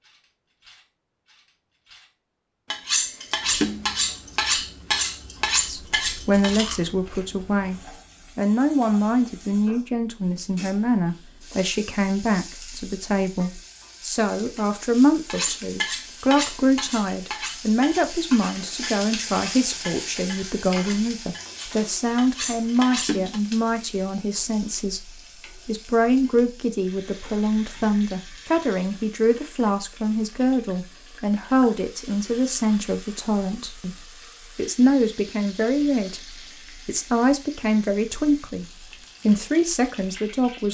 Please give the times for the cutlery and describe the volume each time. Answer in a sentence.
You can hear the cutlery from 0.0 to 6.6 s, getting louder; and from 15.2 to 23.4 s, getting quieter then louder.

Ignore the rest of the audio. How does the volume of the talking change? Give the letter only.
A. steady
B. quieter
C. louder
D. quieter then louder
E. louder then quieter
A.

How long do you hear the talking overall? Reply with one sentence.
You can hear the talking for 35 seconds altogether.